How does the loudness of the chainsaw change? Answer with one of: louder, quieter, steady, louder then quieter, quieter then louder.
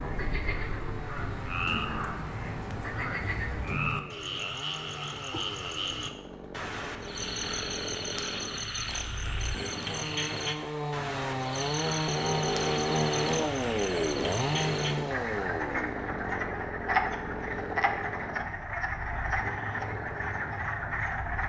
louder then quieter.